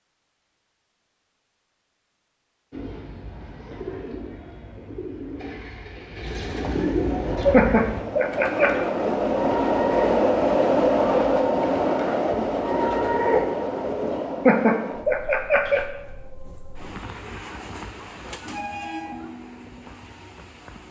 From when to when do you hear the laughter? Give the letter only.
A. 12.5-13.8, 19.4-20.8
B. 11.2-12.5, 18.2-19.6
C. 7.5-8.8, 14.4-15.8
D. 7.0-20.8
C.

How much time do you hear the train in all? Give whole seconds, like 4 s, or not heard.
14 s.